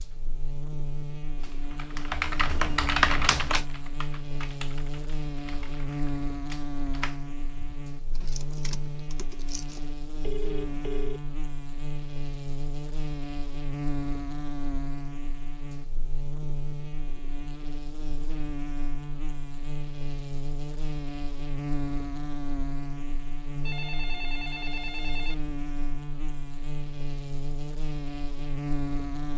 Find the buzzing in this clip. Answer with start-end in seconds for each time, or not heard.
0.0-29.3.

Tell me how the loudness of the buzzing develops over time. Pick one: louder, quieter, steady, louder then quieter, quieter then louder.
steady.